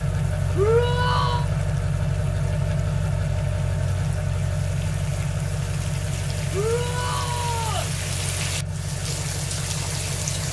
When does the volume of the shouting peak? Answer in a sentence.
The loudest moment of the shouting is at 1 second.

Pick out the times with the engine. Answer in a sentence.
You can hear the engine from 0.0 to 10.4 s.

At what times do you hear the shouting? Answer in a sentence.
You can hear the shouting from 0.6 to 1.4 s and from 6.5 to 7.9 s.